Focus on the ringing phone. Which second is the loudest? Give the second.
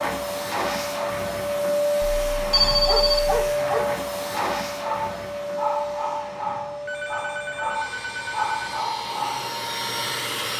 3 s.